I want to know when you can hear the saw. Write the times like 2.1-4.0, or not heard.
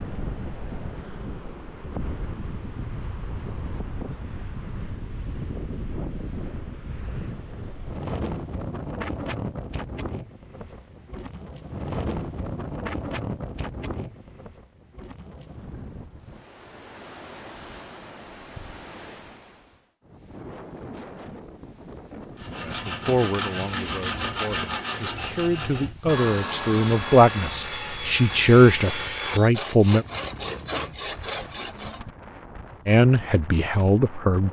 22.4-32.0.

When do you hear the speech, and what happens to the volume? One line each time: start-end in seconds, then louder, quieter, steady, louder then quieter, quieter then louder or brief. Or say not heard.
22.6-30.1 louder
32.9-34.4 brief.